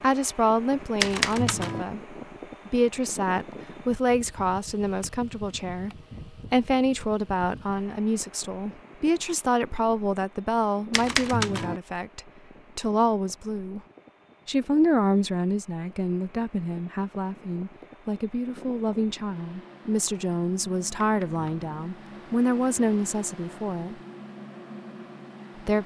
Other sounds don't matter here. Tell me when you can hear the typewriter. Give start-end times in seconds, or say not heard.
1.0-1.9, 10.9-11.8, 21.0-21.7.